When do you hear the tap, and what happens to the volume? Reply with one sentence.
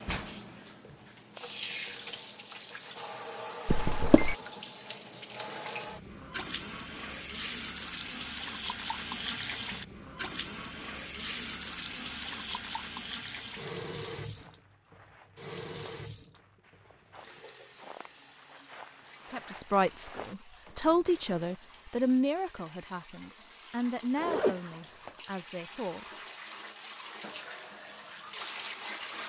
The tap can be heard from 0.0 to 29.2 s, getting quieter then louder.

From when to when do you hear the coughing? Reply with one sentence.
The coughing can be heard from 3.6 to 4.3 s.